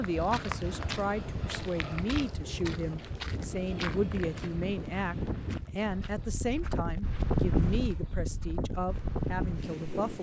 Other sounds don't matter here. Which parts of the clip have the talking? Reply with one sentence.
You can hear the talking from 0.0 to 5.2 s and from 5.8 to 10.1 s.